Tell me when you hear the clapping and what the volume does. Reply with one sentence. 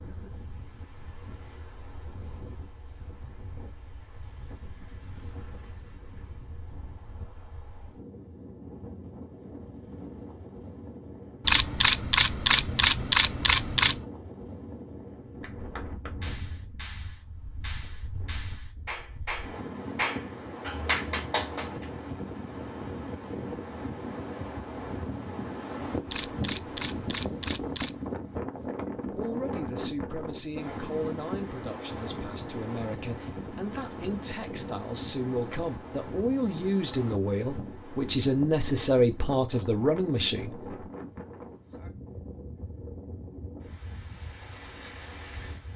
The clapping can be heard from 15.4 to 21.9 s, getting louder.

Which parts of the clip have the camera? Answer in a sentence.
You can hear the camera from 11.4 to 14.1 s and from 26.1 to 28.0 s.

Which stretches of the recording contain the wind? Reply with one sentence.
You can hear the wind from 0.0 to 45.7 s.